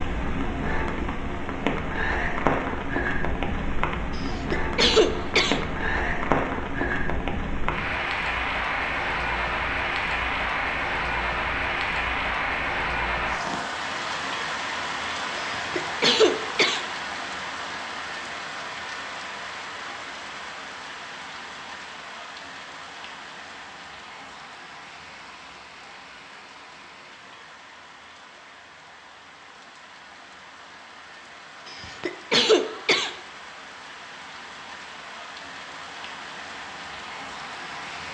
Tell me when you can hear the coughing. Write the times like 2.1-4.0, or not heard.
4.2-5.6, 15.4-16.9, 31.6-33.1.